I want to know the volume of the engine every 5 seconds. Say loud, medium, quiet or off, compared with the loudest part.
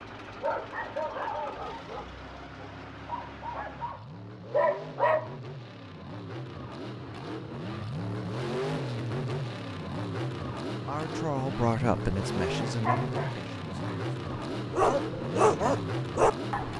medium, loud, loud, loud.